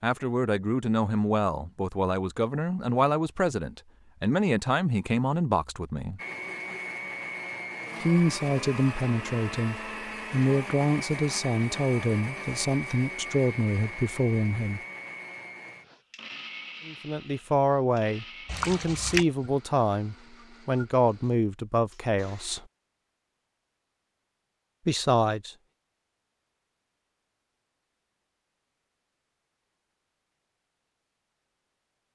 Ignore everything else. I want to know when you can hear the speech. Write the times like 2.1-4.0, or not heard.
0.0-6.2, 8.0-14.8, 16.9-22.6, 24.9-25.6.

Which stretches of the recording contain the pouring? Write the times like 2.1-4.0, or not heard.
18.4-19.2.